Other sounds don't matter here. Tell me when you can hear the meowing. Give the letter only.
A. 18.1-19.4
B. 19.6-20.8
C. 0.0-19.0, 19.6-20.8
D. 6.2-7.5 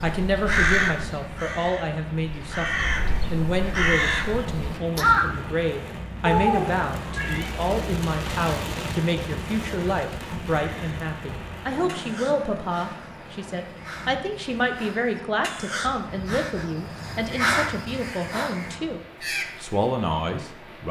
D.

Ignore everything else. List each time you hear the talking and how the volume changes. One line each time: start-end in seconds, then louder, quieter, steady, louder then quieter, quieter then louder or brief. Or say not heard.
0.0-19.0 steady
19.6-20.8 brief.